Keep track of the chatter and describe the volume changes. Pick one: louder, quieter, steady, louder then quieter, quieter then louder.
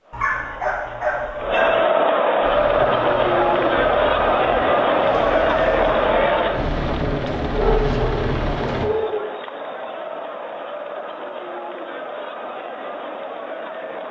quieter.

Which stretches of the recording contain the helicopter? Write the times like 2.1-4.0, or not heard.
2.4-8.8.